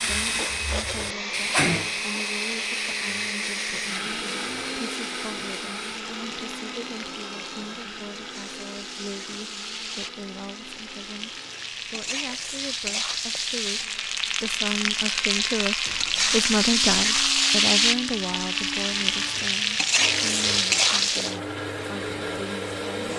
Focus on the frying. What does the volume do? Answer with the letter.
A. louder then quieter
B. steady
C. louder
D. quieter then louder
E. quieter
D.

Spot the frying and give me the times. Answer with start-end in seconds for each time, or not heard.
0.0-21.4.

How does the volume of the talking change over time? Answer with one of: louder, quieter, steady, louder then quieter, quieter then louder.
louder then quieter.